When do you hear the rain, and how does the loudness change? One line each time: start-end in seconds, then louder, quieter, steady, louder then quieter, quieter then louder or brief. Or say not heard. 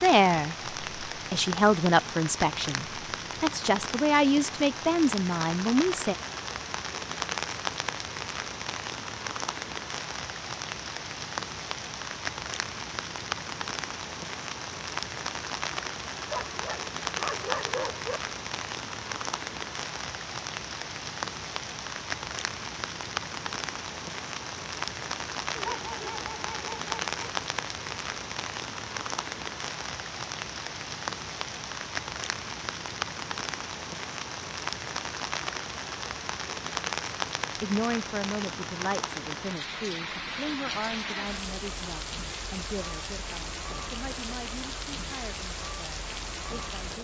0.0-46.9 steady.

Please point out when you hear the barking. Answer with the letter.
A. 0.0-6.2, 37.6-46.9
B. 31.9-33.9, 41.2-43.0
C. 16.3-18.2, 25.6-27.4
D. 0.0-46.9
C.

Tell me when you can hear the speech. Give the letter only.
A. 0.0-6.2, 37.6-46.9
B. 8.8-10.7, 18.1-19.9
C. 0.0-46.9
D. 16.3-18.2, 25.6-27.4
A.